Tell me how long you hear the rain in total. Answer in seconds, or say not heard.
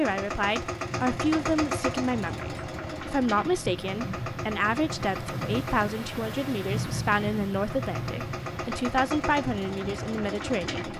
11 s.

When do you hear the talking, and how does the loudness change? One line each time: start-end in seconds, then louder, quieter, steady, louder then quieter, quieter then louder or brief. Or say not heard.
0.0-10.9 steady.